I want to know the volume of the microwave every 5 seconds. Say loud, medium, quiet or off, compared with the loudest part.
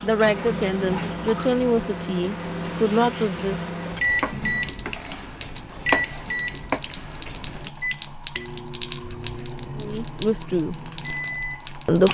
loud, loud, medium.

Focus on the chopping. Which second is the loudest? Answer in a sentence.
The volume of the chopping peaks at 6 seconds.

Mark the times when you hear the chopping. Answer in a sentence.
The chopping can be heard from 4.2 to 6.8 s.